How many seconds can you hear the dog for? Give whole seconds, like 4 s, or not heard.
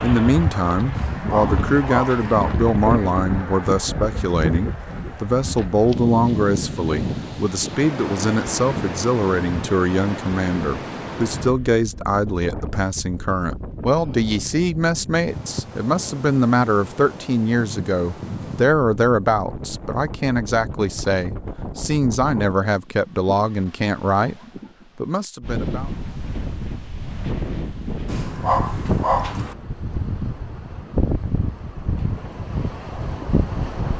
3 s.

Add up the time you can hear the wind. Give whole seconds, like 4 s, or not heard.
34 s.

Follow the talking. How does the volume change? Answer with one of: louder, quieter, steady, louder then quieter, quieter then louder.
steady.